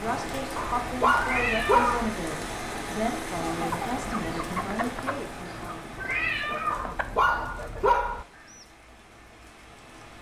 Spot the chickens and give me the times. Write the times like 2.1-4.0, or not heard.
3.4-8.7.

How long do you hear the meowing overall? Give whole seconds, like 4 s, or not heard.
2 s.